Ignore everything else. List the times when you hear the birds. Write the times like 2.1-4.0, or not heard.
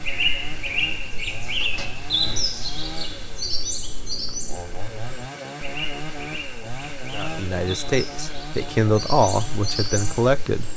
0.0-10.7.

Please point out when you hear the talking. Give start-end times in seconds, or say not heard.
7.1-10.7.